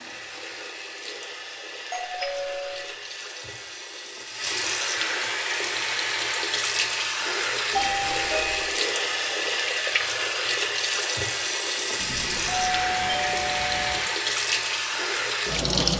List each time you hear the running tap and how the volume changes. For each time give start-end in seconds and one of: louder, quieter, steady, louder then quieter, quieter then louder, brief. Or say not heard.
0.0-15.9 louder.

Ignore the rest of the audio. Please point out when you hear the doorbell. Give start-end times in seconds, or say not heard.
1.9-2.9, 7.7-8.8, 11.9-14.0.